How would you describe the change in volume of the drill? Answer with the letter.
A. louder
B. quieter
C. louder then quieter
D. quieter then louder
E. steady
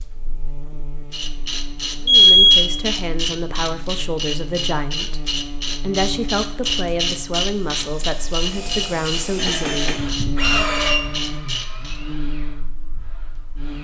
C.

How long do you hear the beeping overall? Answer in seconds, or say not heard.
2 s.